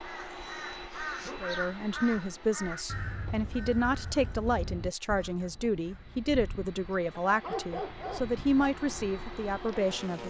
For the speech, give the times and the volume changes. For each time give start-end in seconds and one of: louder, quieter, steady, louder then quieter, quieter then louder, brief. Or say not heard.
1.4-10.2 steady.